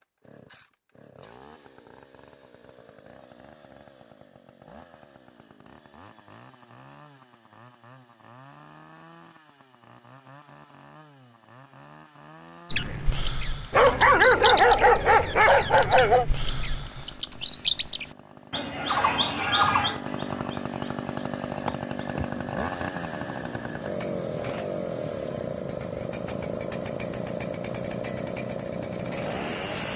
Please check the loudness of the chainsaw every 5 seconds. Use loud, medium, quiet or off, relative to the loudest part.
quiet, quiet, quiet, quiet, loud, loud.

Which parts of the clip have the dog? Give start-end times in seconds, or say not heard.
13.7-16.2.